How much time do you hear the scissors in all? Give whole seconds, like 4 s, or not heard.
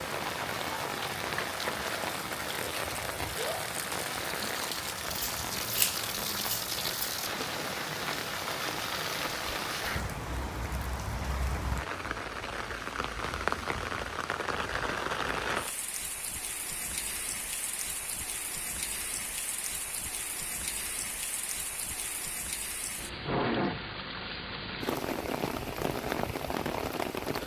2 s.